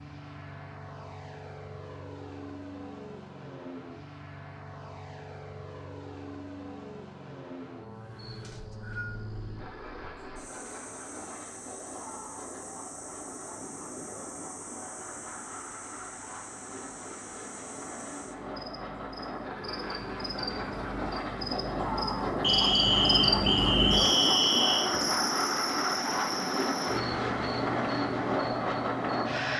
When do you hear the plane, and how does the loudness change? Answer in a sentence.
The plane can be heard from 0.0 to 29.5 s, getting louder.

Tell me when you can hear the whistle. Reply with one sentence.
The whistle can be heard from 8.4 to 9.2 s and from 22.4 to 24.9 s.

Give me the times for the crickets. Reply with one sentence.
You can hear the crickets from 7.8 to 29.5 s.